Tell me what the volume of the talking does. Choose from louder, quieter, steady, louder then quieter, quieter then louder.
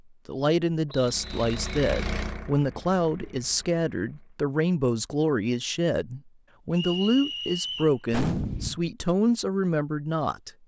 steady.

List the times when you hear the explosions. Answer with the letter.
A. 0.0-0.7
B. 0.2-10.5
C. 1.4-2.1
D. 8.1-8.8
D.